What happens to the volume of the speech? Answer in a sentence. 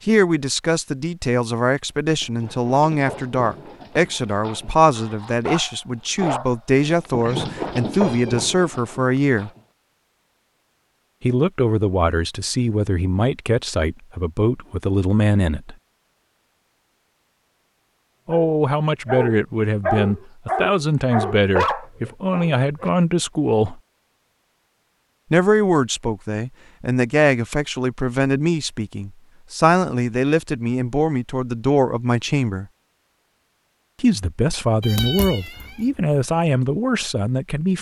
The volume of the speech stays about the same.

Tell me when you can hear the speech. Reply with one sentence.
You can hear the speech from 0.1 to 9.5 s, from 11.2 to 15.8 s, from 18.2 to 23.8 s, from 25.3 to 32.6 s and from 34.0 to 37.7 s.